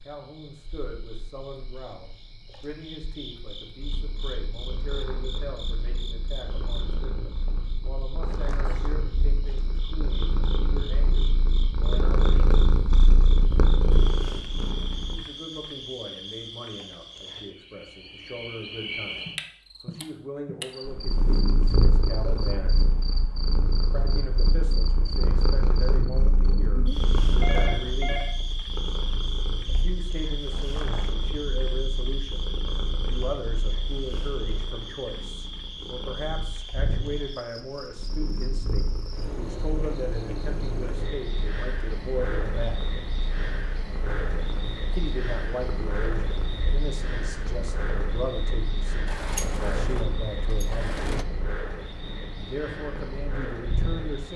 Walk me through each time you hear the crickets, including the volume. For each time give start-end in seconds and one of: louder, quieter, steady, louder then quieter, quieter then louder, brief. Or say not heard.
0.0-54.3 louder.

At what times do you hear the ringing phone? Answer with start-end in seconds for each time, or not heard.
27.4-28.4.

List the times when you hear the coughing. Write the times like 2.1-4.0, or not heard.
not heard.